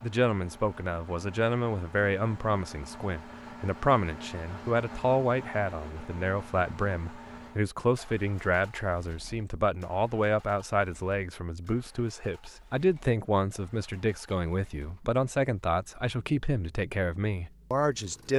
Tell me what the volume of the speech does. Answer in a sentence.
The volume of the speech stays about the same.